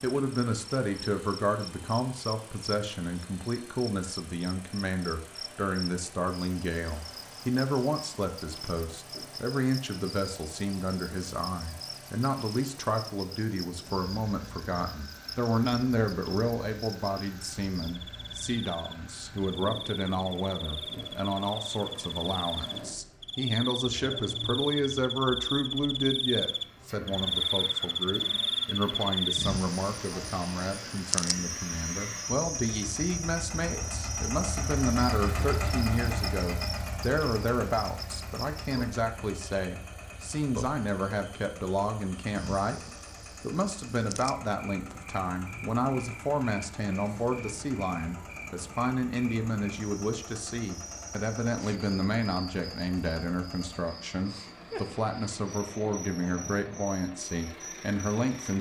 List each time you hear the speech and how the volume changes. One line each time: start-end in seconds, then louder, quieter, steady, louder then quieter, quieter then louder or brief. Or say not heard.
0.0-42.8 steady
43.4-58.5 steady.